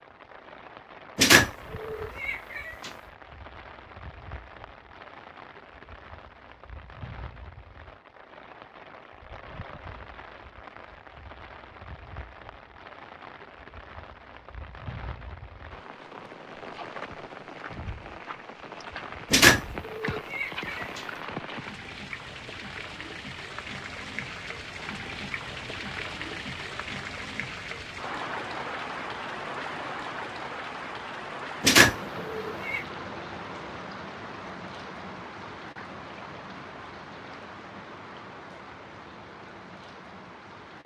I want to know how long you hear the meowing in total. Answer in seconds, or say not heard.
5 s.